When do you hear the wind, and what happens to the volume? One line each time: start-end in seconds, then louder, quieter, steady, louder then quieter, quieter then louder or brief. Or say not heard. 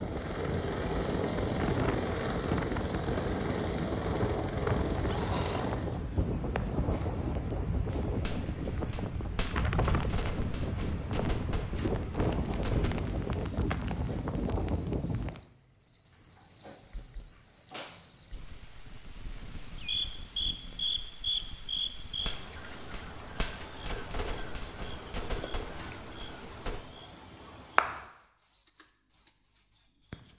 0.0-15.4 steady.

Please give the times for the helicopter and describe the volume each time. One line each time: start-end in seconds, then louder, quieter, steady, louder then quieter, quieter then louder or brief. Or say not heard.
0.0-6.0 steady.